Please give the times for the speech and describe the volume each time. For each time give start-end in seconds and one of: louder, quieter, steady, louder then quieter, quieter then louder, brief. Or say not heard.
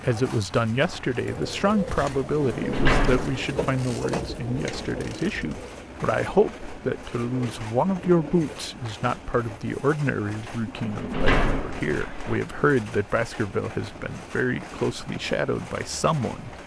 0.0-16.5 steady.